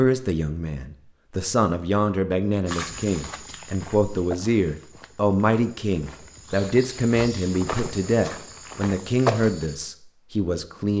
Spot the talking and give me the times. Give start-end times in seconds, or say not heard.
0.0-10.9.